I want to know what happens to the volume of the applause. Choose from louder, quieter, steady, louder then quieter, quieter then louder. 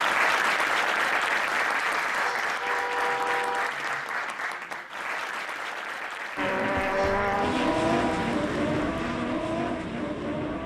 quieter.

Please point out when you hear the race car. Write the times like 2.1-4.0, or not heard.
6.3-10.6.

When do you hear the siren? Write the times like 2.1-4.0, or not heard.
not heard.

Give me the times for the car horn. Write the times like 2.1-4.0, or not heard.
2.2-3.8, 6.9-8.4.